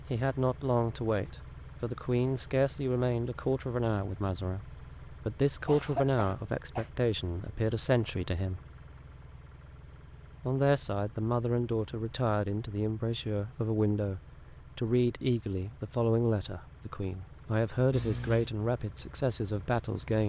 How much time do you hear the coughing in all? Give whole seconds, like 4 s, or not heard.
2 s.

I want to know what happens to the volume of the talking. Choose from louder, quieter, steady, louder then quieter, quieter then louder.
steady.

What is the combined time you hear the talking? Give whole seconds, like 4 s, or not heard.
18 s.